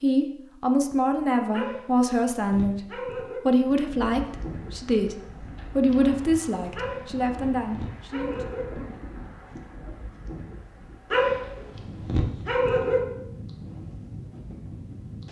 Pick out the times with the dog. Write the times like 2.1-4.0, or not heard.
1.5-3.5, 6.8-8.7, 11.1-13.0.